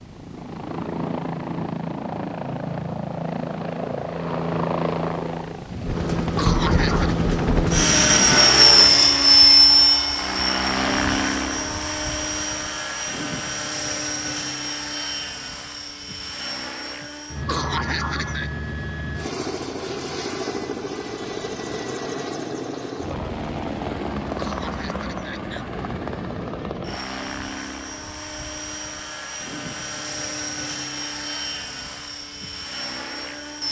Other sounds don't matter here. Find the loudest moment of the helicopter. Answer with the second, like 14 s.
9 s.